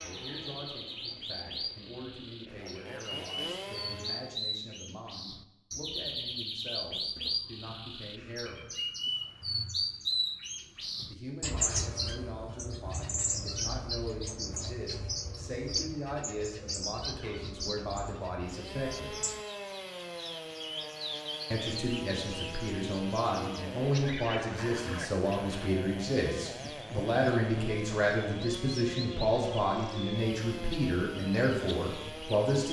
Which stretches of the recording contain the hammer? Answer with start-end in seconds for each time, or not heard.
not heard.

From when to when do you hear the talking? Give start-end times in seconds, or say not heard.
0.0-8.7, 11.1-19.1, 21.5-32.6.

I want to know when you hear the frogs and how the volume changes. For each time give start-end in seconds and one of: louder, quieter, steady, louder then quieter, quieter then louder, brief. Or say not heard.
not heard.